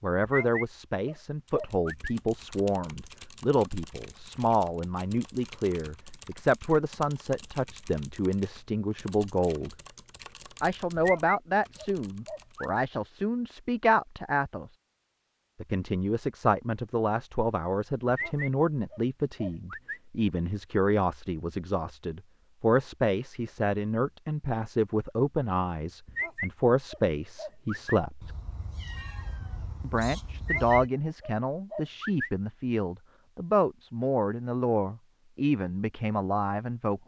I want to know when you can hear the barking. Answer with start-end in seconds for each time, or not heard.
0.2-2.1, 10.9-12.8, 18.1-20.0, 26.1-28.0, 30.4-32.3.